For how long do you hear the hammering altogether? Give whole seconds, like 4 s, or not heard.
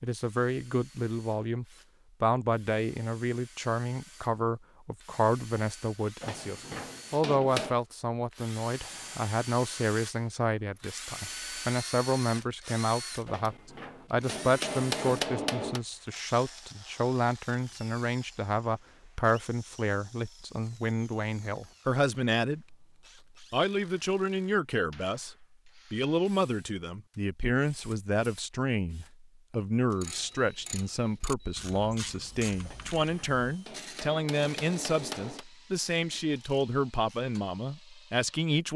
7 s.